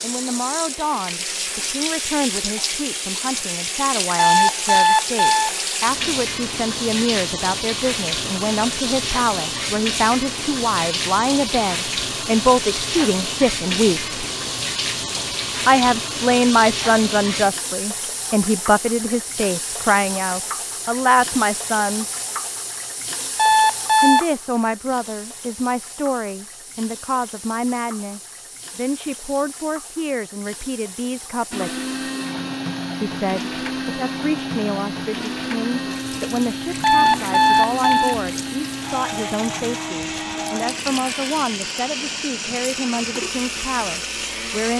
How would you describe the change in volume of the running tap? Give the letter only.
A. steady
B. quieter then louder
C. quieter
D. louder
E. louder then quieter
C.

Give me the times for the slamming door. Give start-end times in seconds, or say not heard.
not heard.